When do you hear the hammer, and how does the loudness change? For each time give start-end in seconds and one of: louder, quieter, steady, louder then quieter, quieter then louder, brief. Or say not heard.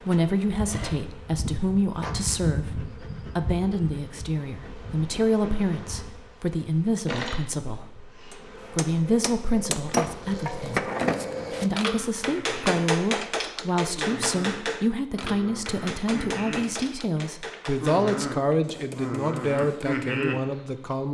8.3-20.2 quieter.